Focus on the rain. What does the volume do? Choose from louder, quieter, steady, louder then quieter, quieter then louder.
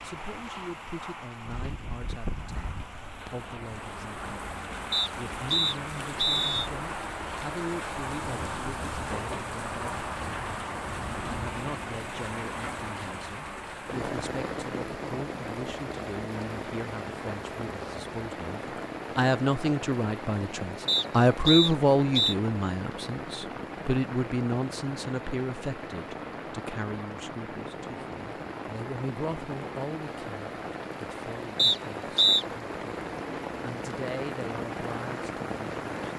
steady.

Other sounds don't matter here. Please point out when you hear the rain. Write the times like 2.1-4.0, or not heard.
0.0-36.1.